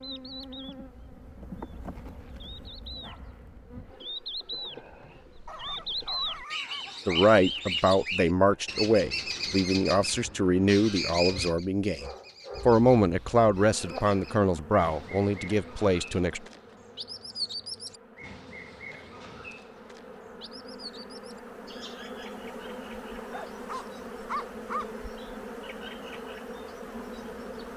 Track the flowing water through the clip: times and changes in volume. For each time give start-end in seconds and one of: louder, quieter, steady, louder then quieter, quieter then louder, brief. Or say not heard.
not heard.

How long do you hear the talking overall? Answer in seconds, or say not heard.
9 s.